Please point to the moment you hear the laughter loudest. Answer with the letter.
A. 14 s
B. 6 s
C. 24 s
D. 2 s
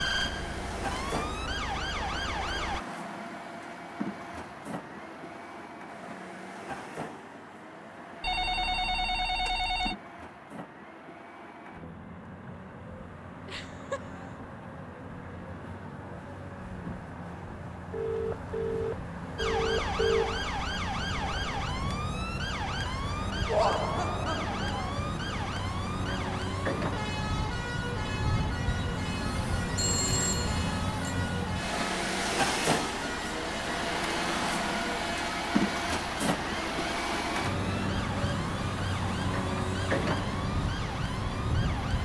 C.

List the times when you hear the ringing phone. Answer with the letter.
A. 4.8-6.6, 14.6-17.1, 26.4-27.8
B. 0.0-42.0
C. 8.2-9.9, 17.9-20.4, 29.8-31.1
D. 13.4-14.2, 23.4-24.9
C.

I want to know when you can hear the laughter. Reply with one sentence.
You can hear the laughter from 13.4 to 14.2 s and from 23.4 to 24.9 s.